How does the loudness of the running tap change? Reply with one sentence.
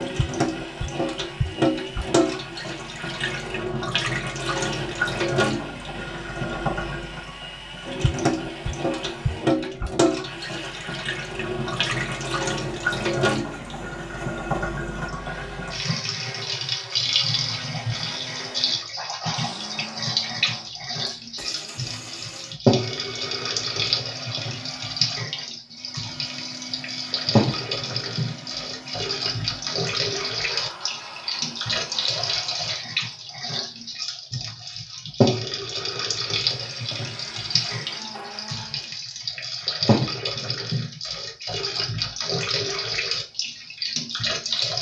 The volume of the running tap stays about the same.